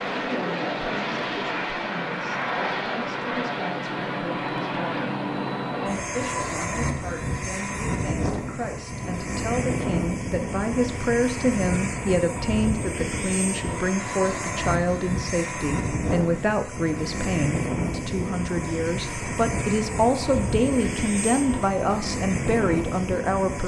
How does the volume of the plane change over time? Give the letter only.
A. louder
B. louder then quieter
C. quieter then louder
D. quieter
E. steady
E.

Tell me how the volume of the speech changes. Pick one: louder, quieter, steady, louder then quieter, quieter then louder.
louder.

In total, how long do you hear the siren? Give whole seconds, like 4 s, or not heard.
not heard.